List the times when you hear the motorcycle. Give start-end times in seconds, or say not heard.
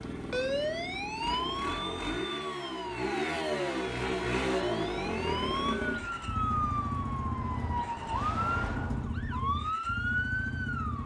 0.0-11.0.